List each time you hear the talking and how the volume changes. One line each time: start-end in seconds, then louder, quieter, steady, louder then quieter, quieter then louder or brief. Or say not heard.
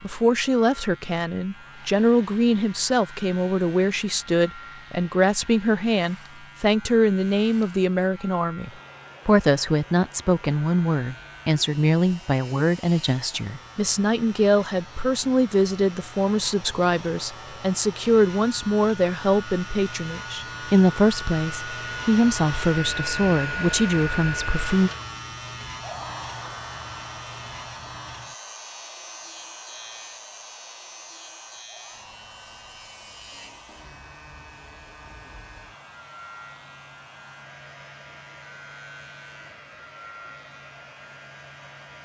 0.0-24.9 steady.